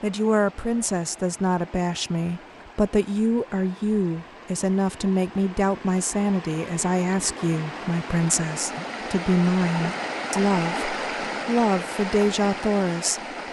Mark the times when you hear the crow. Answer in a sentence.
You can't hear the crow here.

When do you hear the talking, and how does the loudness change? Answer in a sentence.
The talking can be heard from 0.0 to 13.2 s, at a steady volume.